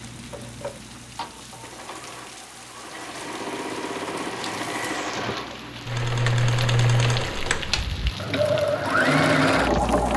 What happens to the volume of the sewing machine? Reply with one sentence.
The loudness of the sewing machine goes up.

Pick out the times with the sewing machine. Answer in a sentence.
The sewing machine can be heard from 0.0 to 10.1 s.